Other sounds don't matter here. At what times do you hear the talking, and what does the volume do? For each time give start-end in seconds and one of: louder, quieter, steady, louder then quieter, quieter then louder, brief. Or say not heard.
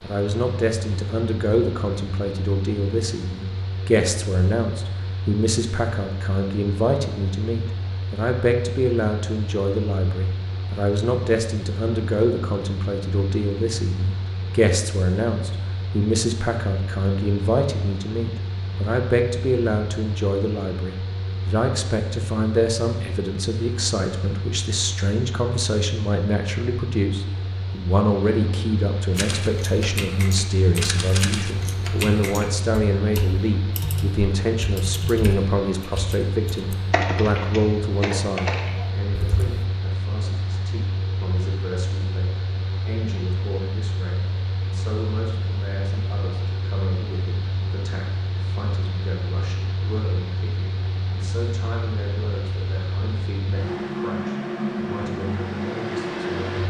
0.0-56.6 quieter.